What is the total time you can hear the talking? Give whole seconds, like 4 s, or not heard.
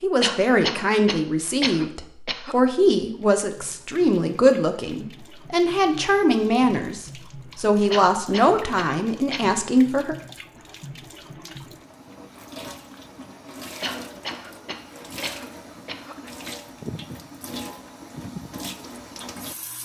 10 s.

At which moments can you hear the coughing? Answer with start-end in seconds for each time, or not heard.
0.2-2.5, 7.9-9.4, 13.8-16.1.